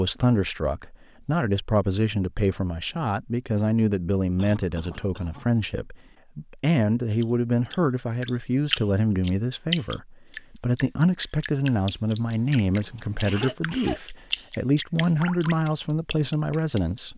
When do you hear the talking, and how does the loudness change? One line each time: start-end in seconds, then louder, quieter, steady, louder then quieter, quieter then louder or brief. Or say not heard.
0.0-17.1 steady.